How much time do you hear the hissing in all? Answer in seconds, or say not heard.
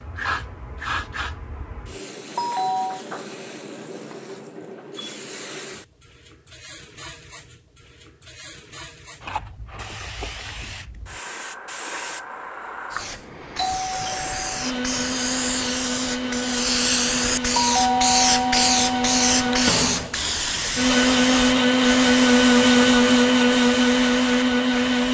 25 s.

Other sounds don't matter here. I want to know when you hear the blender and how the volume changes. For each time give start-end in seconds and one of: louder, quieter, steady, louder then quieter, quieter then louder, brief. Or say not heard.
14.6-25.1 louder.